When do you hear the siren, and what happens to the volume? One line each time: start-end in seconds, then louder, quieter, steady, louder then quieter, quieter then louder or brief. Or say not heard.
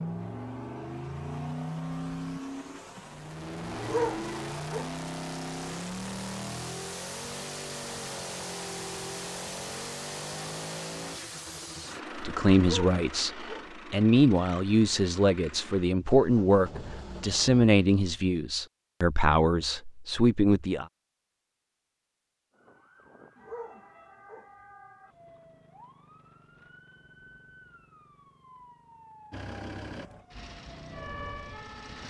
22.5-32.0 louder.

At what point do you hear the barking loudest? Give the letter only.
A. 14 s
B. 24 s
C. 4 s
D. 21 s
C.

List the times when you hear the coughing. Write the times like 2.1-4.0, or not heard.
not heard.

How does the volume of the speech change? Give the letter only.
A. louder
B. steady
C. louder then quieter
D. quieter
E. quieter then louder
B.